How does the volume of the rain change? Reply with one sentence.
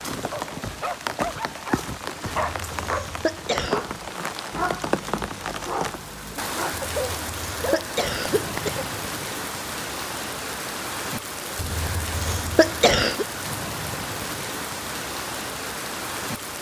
The loudness of the rain stays about the same.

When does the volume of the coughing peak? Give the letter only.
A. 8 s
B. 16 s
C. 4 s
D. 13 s
D.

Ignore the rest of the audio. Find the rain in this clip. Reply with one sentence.
The rain can be heard from 0.0 to 16.5 s.